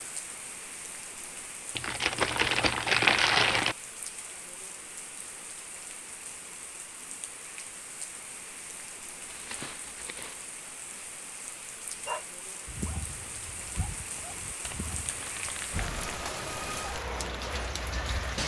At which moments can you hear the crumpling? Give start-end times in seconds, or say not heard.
1.8-3.8, 9.2-10.4, 14.6-16.1.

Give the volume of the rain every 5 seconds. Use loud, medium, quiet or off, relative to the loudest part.
medium, medium, medium, loud.